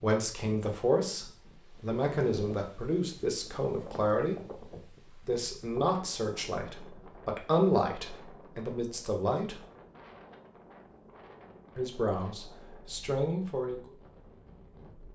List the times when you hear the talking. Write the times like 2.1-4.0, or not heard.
0.0-9.6, 11.8-13.8.